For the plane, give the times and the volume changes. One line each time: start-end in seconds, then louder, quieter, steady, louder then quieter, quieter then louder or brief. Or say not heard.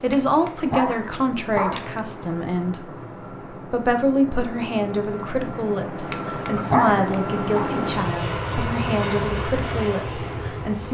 0.0-10.8 louder.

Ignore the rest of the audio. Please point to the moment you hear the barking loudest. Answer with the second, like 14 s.
7 s.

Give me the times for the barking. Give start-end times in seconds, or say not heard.
0.2-2.0, 6.1-7.7.